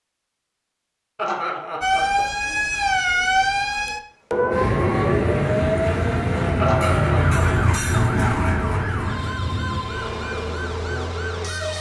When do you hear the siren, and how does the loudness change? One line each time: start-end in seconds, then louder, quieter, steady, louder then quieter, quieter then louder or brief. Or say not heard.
1.8-11.7 quieter.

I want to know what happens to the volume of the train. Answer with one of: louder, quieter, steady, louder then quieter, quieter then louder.
quieter.